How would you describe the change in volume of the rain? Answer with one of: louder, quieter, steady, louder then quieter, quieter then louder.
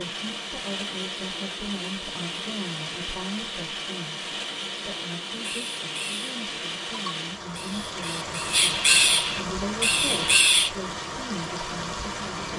steady.